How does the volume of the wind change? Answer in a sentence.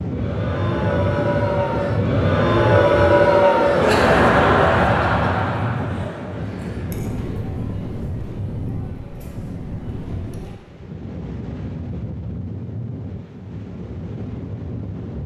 The loudness of the wind goes down.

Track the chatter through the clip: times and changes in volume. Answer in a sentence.
The chatter can be heard from 0.0 to 10.6 s, getting louder then quieter.